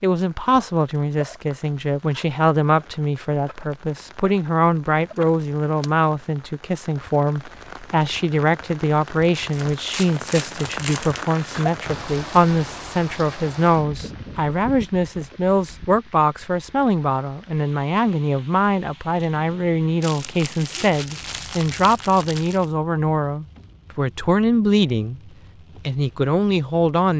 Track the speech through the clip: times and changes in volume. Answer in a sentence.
You can hear the speech from 0.0 to 25.2 s, at a steady volume; and briefly from 25.9 to 27.1 s.